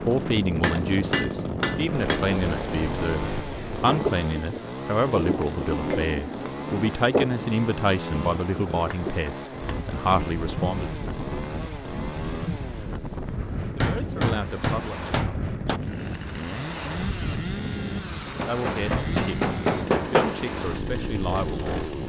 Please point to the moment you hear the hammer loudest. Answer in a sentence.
The volume of the hammer peaks at 20 seconds.